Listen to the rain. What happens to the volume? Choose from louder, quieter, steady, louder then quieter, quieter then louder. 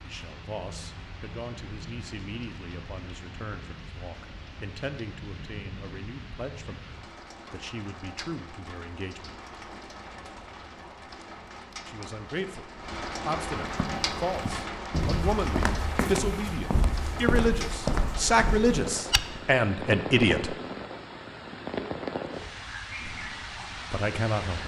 louder.